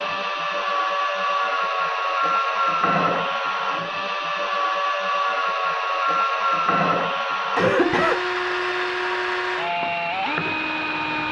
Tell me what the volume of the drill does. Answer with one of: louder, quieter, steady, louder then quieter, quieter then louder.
steady.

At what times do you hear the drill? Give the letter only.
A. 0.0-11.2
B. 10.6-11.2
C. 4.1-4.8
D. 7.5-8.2
A.